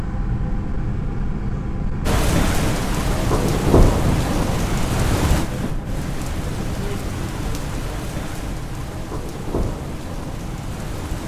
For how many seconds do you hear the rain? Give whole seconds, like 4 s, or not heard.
9 s.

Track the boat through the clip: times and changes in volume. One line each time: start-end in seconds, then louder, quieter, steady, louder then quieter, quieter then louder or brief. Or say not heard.
0.0-11.2 quieter.